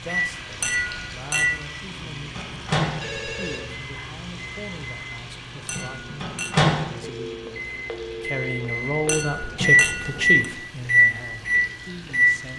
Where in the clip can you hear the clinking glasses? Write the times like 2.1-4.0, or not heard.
0.6-1.6, 5.7-6.5, 9.1-10.3.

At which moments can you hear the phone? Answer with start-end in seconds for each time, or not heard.
3.0-3.6, 7.0-9.3.